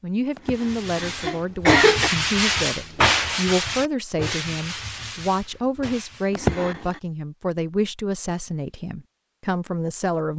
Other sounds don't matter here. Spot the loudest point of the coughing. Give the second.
2 s.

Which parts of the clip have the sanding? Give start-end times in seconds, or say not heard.
0.5-6.3.